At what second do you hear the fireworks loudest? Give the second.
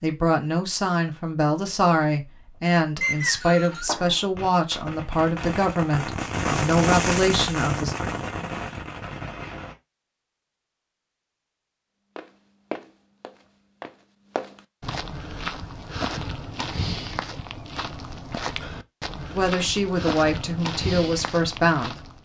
7 s.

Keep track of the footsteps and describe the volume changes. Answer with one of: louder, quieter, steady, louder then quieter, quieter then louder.
steady.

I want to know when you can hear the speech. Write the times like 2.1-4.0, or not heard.
0.0-8.0, 19.3-22.1.